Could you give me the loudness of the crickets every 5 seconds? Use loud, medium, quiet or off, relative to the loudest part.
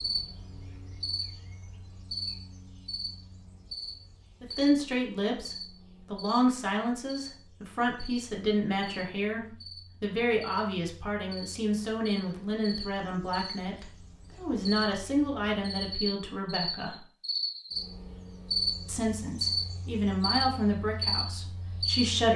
medium, quiet, medium, loud, loud.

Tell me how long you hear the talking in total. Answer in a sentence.
You can hear the talking for 16 seconds altogether.